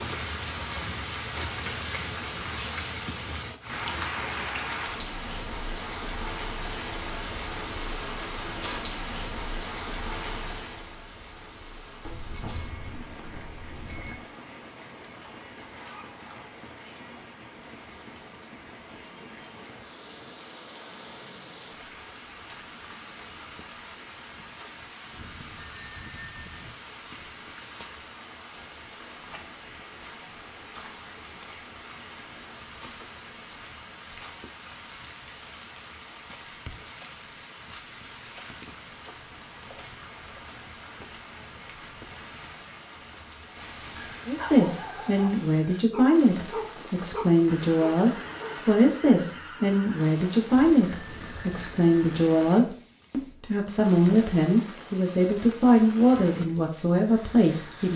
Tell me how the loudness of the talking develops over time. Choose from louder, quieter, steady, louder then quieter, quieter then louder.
steady.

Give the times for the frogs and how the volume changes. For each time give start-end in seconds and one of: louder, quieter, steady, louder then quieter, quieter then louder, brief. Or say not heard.
not heard.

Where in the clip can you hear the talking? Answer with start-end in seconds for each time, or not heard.
44.2-57.9.